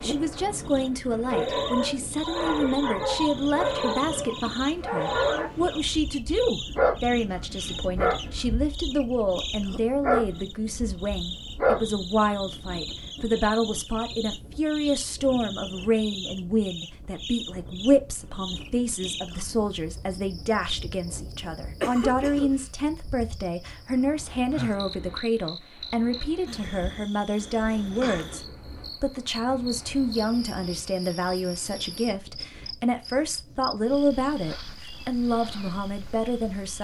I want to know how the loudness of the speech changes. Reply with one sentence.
The loudness of the speech stays about the same.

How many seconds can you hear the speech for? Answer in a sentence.
You can hear the speech for 37 seconds altogether.